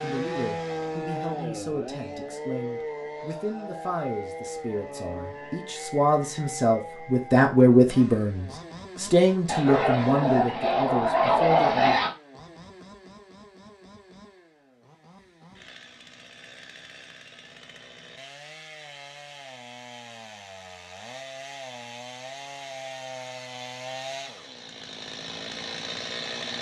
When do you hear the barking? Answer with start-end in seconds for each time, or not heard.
9.4-12.1.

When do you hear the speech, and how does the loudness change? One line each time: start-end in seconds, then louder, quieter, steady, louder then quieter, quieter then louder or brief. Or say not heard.
0.0-12.0 louder then quieter.